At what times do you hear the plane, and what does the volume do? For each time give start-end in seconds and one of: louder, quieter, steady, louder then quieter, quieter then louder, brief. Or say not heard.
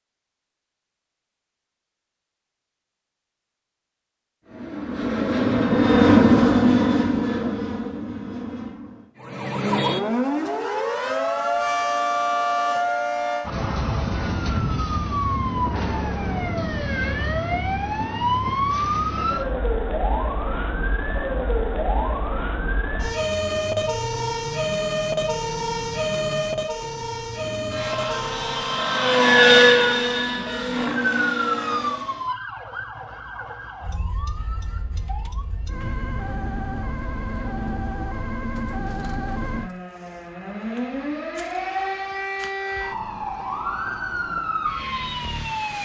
4.5-9.1 louder then quieter
27.3-32.3 louder then quieter.